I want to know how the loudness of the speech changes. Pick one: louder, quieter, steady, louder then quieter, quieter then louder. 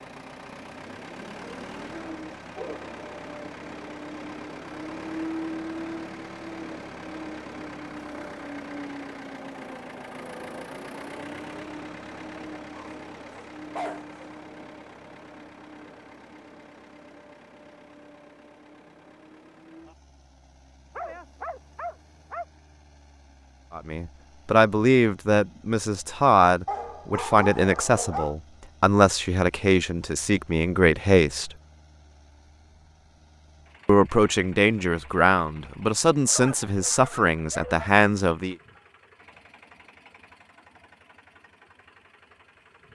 steady.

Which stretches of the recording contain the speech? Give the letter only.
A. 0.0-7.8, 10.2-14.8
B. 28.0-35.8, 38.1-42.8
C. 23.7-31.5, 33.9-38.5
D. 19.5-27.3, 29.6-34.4
C.